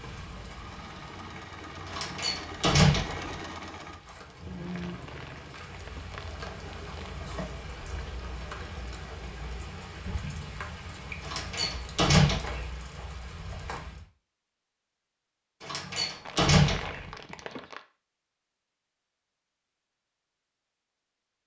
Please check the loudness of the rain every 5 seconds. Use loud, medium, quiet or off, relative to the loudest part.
medium, loud, loud, off, off.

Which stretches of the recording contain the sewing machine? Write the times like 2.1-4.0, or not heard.
0.2-10.0.